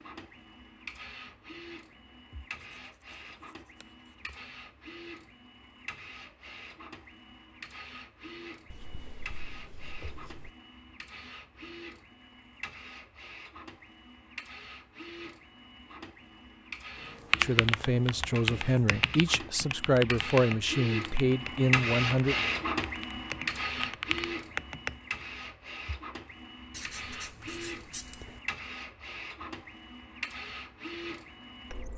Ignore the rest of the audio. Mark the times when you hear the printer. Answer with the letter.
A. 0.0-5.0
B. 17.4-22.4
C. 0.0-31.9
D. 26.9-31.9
C.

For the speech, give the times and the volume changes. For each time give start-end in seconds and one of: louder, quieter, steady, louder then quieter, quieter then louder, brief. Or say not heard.
17.4-22.4 steady.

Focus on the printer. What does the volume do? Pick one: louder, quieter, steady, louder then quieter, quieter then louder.
louder then quieter.